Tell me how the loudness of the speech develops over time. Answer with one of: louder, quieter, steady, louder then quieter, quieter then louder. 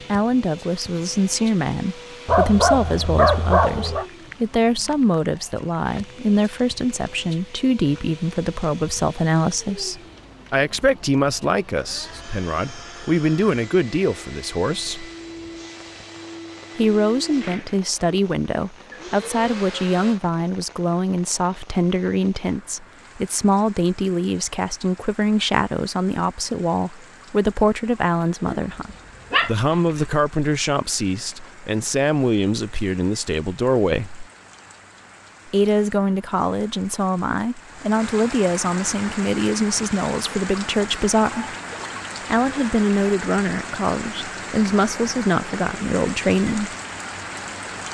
steady.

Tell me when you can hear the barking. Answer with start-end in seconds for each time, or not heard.
2.2-4.0, 28.6-30.1.